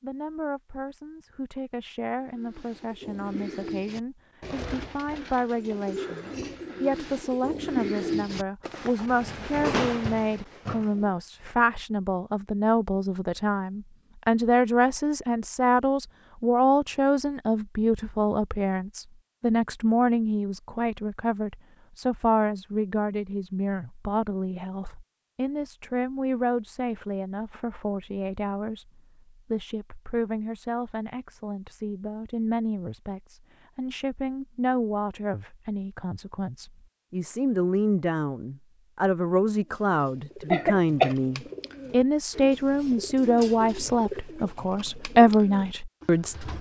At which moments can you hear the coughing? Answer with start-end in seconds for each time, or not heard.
40.5-41.1.